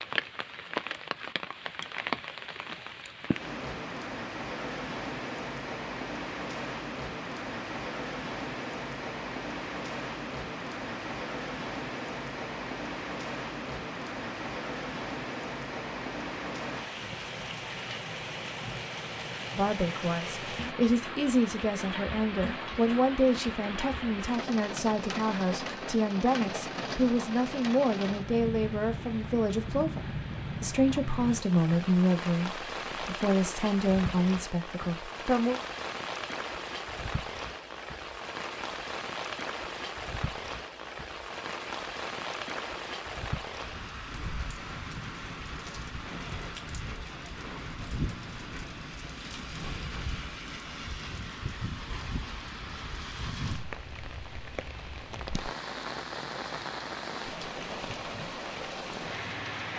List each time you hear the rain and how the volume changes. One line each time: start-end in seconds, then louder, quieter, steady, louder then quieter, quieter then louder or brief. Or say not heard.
0.0-59.7 steady.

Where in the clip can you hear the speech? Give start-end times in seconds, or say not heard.
19.6-35.6.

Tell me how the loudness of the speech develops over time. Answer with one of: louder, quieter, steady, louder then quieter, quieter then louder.
steady.